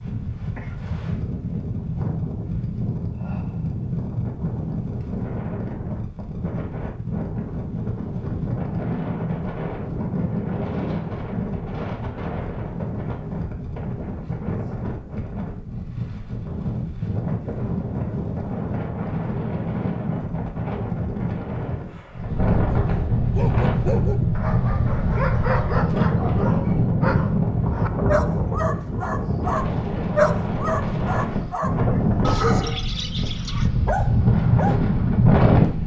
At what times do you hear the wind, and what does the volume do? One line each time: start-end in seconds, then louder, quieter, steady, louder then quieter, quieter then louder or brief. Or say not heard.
0.0-35.8 louder.